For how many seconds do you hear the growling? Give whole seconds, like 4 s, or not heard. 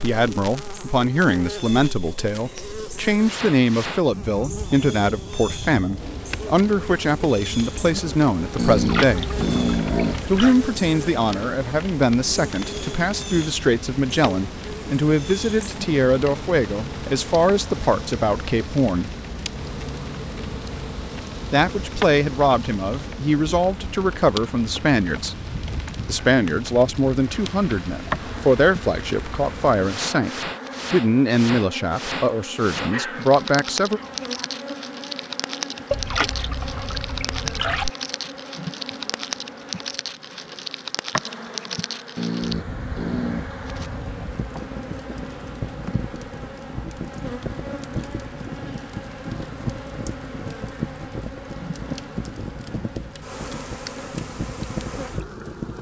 5 s.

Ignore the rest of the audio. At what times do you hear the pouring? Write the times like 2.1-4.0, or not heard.
8.7-10.6, 35.9-37.9.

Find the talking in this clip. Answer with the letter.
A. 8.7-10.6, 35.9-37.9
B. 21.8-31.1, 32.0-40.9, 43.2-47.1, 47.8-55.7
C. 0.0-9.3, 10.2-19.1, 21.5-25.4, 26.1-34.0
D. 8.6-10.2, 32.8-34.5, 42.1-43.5
C.